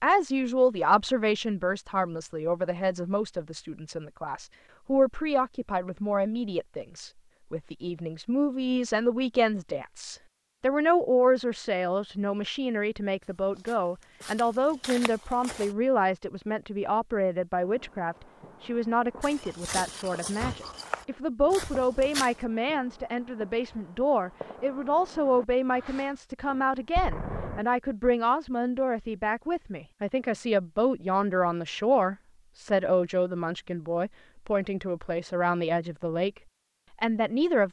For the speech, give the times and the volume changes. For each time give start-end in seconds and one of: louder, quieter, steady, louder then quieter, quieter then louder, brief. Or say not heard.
0.0-36.3 steady
37.0-37.6 brief.